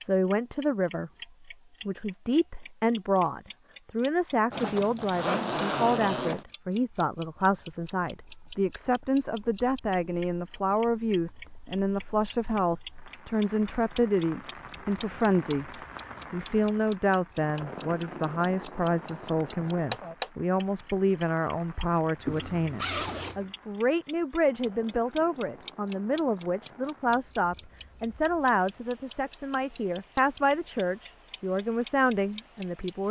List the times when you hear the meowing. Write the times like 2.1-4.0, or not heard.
not heard.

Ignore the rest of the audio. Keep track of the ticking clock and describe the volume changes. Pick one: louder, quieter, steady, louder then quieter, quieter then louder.
steady.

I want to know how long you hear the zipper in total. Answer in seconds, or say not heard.
3 s.